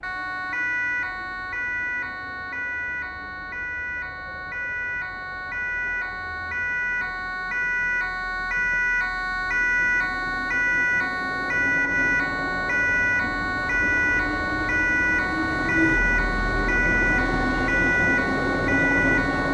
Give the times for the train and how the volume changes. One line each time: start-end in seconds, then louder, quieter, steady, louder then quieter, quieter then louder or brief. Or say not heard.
0.0-19.4 louder.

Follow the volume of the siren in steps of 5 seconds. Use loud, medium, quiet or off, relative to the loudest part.
medium, loud, loud, loud.